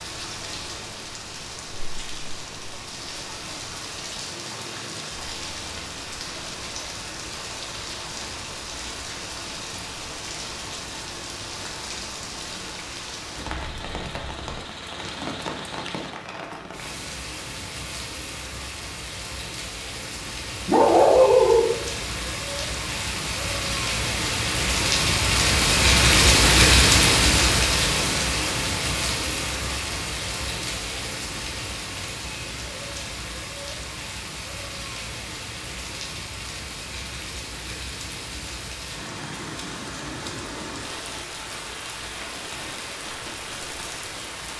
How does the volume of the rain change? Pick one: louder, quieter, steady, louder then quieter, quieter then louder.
louder then quieter.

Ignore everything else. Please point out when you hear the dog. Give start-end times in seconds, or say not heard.
20.6-21.6.